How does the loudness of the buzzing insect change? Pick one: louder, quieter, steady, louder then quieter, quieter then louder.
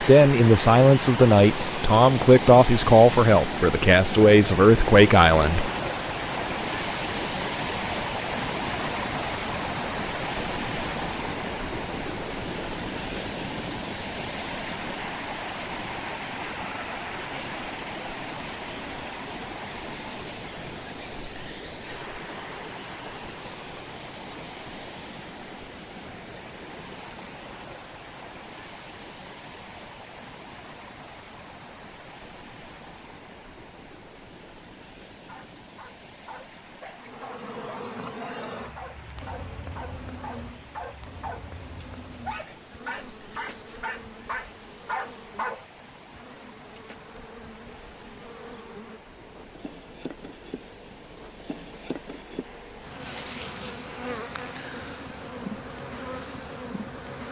quieter then louder.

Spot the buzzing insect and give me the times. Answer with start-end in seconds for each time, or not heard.
37.0-57.2.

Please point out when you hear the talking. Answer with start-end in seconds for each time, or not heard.
0.0-5.7.